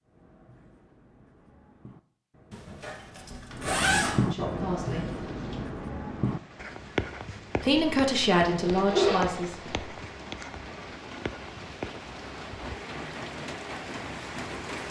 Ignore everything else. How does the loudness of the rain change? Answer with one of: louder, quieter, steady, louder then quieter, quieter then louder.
louder.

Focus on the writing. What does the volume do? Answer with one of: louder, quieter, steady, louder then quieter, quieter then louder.
louder then quieter.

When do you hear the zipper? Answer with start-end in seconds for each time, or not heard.
2.5-4.2, 8.6-9.8.